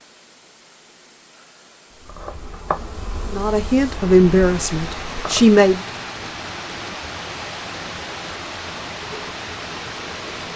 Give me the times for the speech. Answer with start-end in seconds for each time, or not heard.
3.3-5.8.